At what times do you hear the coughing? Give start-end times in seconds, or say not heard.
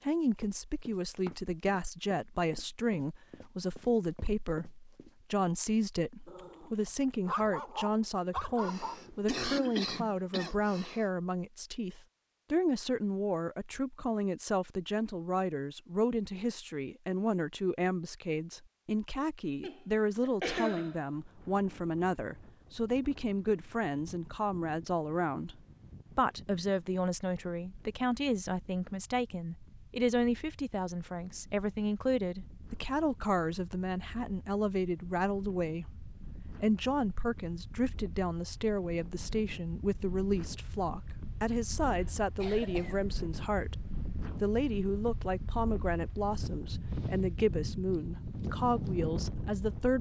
8.6-11.1, 19.6-21.1, 41.9-43.0.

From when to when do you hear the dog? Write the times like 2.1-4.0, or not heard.
6.2-9.0.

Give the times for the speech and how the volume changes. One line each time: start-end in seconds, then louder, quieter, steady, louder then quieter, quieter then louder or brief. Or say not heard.
0.1-49.9 steady.